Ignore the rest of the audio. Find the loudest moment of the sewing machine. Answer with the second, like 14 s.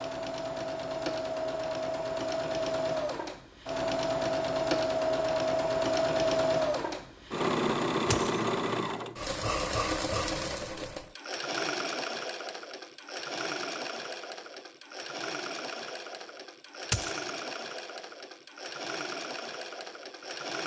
6 s.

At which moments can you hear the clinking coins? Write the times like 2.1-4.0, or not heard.
8.1-8.5, 16.9-17.3.